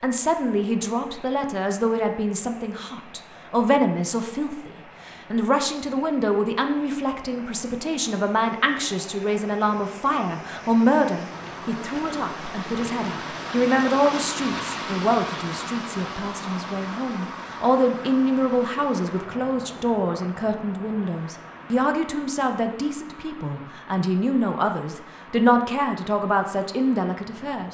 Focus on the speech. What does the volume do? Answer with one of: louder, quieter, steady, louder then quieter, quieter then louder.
steady.